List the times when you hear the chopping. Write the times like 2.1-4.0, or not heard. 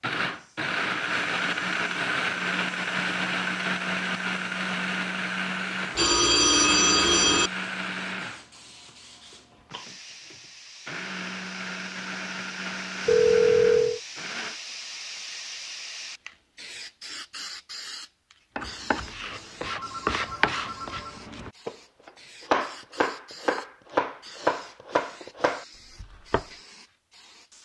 18.6-26.4.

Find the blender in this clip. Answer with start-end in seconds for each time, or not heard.
0.0-14.6.